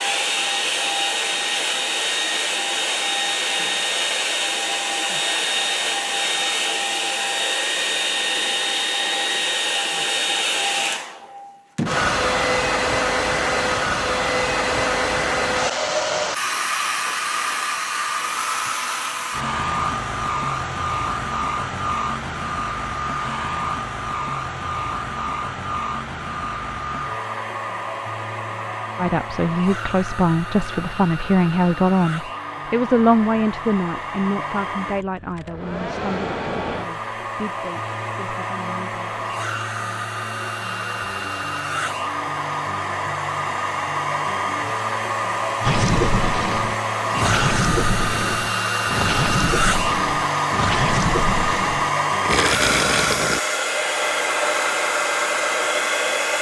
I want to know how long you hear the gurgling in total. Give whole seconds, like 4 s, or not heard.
8 s.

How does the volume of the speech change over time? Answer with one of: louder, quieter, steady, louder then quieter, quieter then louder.
quieter.